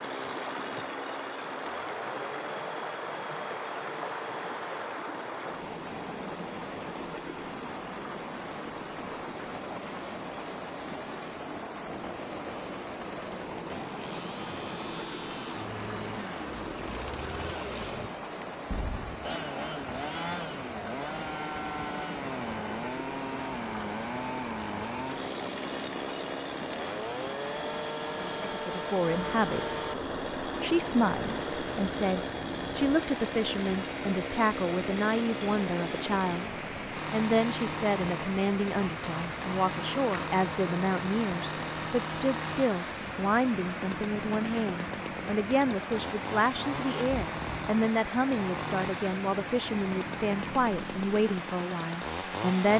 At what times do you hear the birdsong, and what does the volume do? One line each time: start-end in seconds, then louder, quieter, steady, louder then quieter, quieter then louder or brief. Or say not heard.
not heard.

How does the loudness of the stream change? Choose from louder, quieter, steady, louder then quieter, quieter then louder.
steady.